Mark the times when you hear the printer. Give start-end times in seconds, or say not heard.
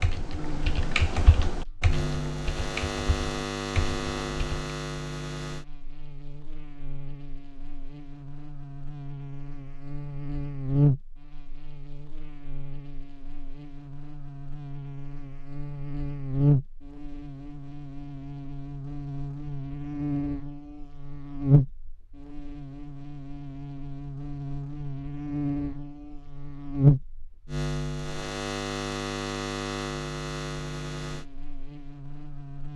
not heard.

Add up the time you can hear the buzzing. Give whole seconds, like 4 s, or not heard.
33 s.